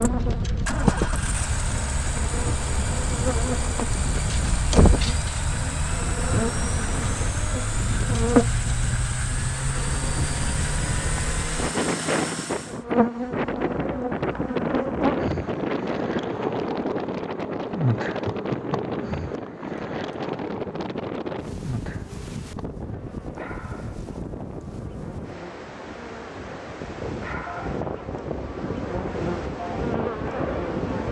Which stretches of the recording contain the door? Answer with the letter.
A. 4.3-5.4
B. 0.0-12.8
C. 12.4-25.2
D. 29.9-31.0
A.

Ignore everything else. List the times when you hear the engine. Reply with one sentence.
You can hear the engine from 0.0 to 12.8 s.